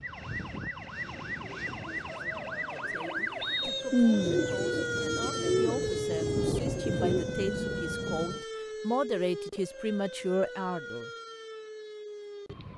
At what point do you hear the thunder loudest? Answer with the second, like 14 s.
4 s.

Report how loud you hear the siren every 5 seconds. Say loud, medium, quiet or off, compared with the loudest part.
loud, loud, medium.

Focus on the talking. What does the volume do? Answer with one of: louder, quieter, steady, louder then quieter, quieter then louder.
louder.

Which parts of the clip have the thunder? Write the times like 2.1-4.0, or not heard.
3.9-8.4.